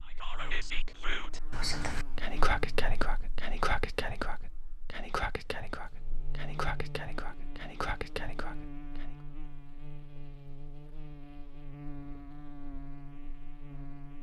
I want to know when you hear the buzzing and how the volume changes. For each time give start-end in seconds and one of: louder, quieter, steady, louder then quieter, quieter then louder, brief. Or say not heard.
0.0-14.1 quieter then louder.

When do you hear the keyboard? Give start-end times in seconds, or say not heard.
not heard.